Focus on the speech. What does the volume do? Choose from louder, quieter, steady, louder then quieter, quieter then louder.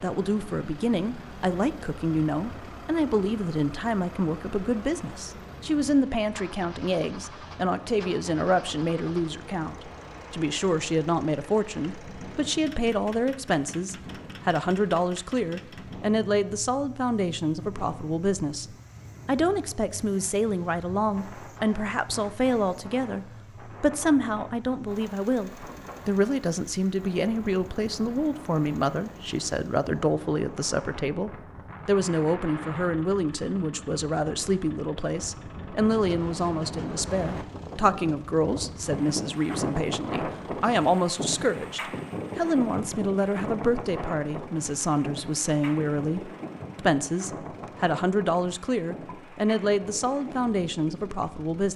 steady.